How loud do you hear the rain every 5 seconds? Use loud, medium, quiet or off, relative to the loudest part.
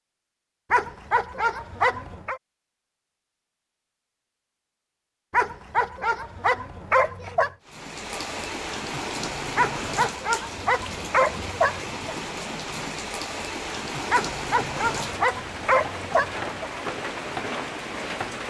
off, loud, loud, loud.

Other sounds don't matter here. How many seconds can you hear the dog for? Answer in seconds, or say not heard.
9 s.